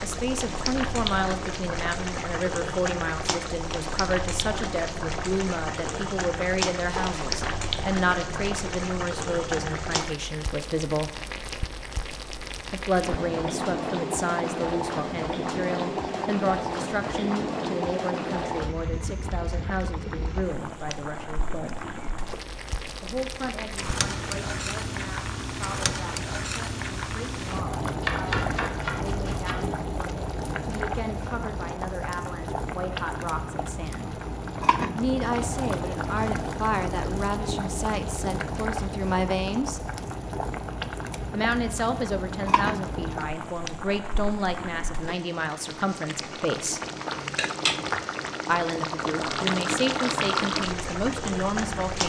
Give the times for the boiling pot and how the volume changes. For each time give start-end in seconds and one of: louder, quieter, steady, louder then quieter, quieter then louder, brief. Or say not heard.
0.0-52.0 steady.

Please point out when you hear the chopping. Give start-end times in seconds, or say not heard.
6.8-7.7, 28.0-29.6, 47.0-48.1.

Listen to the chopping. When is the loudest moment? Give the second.
28 s.